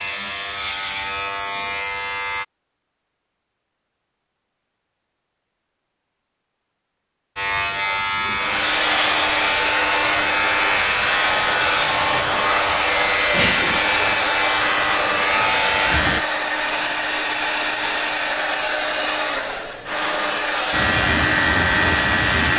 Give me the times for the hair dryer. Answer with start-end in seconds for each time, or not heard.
8.3-22.5.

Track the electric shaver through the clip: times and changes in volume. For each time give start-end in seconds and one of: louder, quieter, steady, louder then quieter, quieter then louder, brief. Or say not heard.
0.0-2.5 brief
7.3-16.2 steady
20.7-22.5 brief.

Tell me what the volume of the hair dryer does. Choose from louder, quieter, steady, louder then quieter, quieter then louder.
steady.